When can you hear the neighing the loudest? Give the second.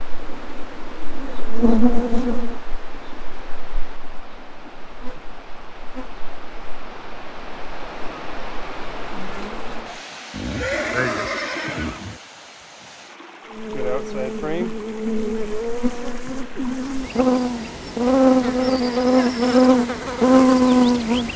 11 s.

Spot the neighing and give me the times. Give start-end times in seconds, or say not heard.
10.3-12.2.